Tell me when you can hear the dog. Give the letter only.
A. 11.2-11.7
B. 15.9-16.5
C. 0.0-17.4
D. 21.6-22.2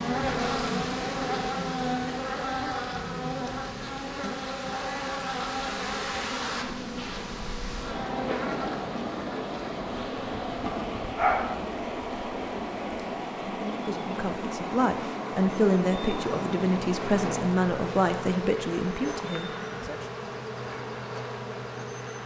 A.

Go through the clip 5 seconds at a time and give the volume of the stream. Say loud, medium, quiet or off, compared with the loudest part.
medium, loud, loud, loud, off.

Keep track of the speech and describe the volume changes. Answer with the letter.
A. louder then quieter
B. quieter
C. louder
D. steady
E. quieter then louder
A.